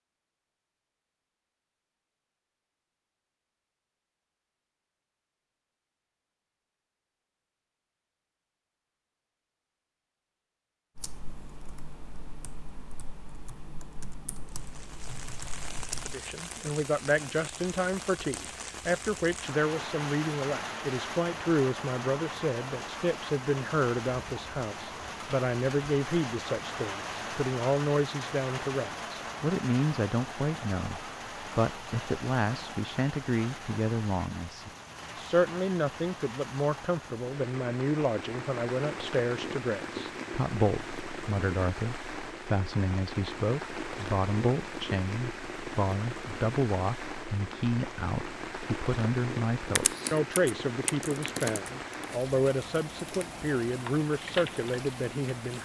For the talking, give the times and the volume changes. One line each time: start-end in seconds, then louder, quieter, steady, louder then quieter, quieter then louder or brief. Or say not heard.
16.1-55.6 steady.